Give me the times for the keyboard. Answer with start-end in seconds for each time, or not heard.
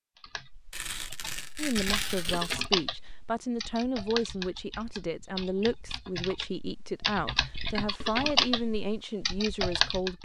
0.2-10.2.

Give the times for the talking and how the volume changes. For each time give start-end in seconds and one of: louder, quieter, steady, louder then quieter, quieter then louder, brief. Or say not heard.
1.6-10.2 steady.